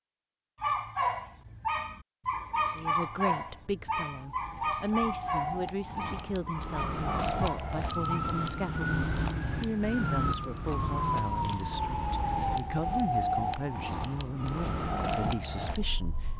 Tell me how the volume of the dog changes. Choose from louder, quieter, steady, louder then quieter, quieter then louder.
quieter.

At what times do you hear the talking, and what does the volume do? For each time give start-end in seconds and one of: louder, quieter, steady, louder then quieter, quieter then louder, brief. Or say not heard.
2.8-16.3 steady.